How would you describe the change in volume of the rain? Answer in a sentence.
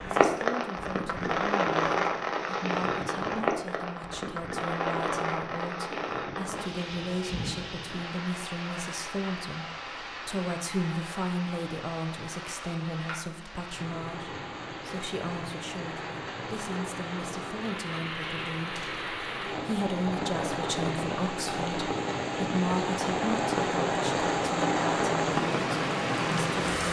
The loudness of the rain goes down, then up.